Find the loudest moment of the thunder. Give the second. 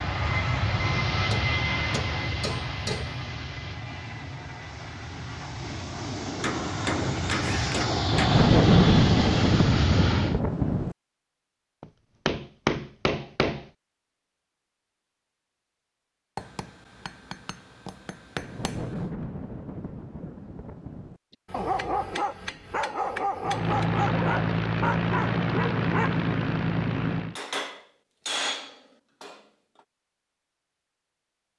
9 s.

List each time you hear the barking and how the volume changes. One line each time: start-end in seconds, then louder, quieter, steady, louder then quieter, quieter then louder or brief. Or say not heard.
21.5-26.3 steady.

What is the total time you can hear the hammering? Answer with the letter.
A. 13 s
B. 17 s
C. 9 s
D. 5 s
A.